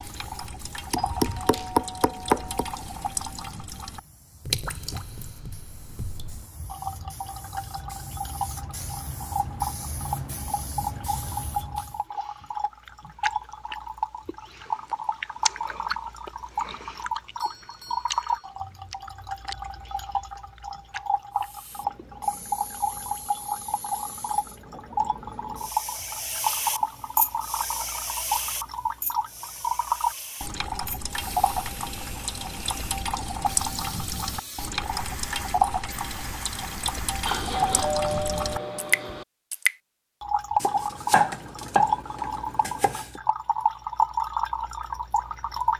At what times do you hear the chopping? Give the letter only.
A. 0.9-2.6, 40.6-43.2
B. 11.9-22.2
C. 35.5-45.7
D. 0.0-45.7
A.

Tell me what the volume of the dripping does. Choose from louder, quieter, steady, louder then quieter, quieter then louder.
louder.